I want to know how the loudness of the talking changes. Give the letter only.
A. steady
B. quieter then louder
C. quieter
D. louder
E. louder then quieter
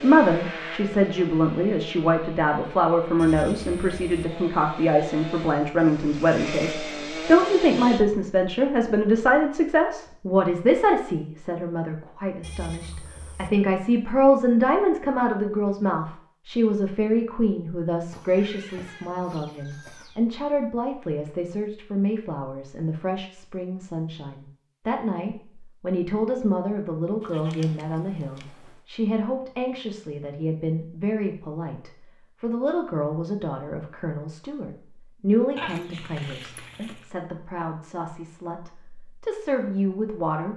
C.